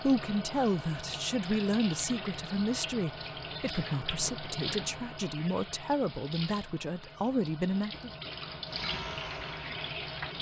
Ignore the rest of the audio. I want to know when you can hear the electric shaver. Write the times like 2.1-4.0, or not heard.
8.7-10.2.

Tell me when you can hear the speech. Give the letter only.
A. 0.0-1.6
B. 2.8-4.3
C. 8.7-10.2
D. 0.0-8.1
D.